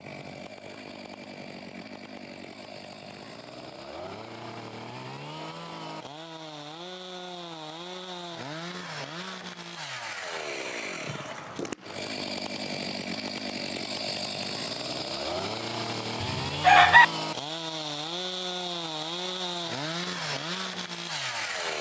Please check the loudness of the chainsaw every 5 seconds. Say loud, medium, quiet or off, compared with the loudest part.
medium, medium, loud, loud, loud.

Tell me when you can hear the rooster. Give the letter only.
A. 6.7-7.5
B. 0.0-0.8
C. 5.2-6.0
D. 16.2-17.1
D.